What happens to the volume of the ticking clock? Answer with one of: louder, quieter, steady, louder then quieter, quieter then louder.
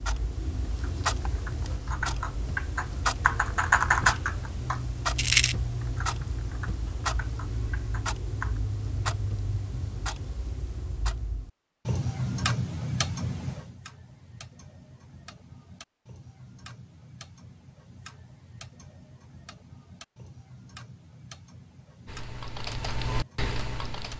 quieter.